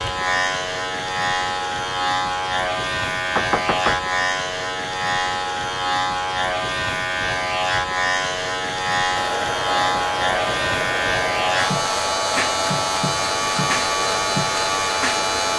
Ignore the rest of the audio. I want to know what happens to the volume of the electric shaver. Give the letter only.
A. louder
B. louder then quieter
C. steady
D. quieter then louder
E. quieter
C.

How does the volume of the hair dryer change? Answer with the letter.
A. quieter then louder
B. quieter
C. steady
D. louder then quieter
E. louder
C.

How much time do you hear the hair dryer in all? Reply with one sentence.
You can hear the hair dryer for 6 seconds altogether.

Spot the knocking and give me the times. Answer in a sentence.
You can hear the knocking from 3.4 to 4.0 s.